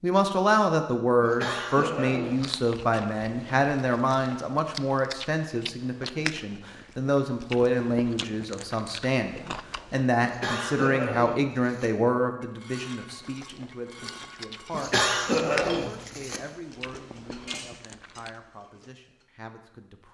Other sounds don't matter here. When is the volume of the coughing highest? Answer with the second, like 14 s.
15 s.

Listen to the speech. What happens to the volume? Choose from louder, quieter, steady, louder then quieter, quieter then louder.
quieter.